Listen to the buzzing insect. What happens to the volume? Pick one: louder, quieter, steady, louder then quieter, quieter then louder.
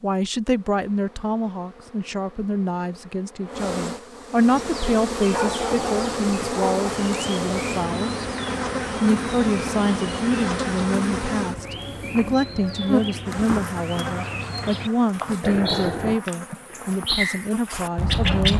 louder then quieter.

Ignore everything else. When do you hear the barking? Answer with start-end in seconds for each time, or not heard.
5.3-6.9, 15.4-16.2.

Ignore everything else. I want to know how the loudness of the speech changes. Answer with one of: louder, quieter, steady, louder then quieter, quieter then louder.
steady.